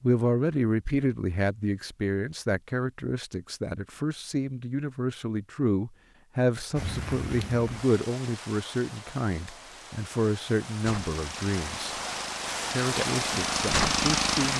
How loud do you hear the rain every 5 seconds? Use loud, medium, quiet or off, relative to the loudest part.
off, medium, loud.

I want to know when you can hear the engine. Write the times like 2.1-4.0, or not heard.
11.2-14.5.